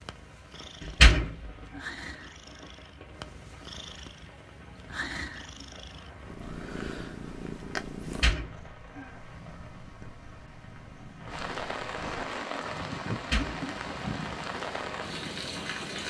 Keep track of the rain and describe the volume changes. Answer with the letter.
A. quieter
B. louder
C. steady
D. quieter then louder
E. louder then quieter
B.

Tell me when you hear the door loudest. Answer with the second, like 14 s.
1 s.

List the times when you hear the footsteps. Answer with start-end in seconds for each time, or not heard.
not heard.